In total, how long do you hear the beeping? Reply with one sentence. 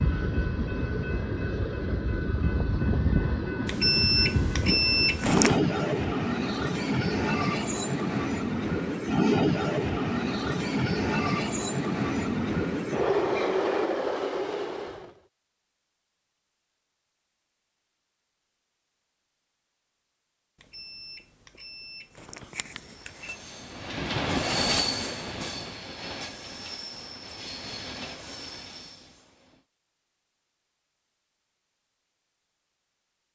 You can hear the beeping for 5 seconds altogether.